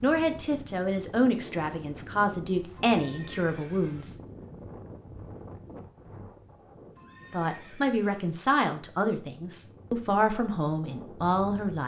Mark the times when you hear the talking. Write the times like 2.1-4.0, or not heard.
0.0-4.2, 7.3-11.8.